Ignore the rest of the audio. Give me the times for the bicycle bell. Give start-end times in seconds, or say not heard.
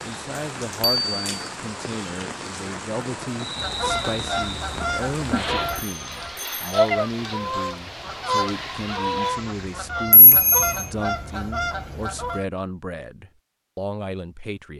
0.8-1.5, 5.6-6.8, 10.1-10.8.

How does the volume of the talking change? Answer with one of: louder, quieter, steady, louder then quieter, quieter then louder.
steady.